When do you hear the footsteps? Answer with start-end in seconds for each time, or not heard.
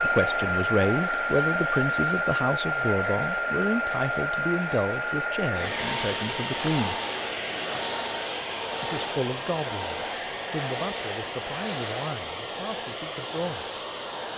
not heard.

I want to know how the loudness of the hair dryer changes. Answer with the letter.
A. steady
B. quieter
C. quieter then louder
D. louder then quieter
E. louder
B.